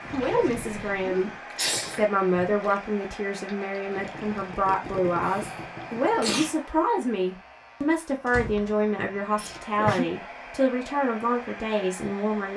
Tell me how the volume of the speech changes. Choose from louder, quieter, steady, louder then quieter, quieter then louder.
steady.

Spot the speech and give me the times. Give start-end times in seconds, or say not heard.
0.0-12.5.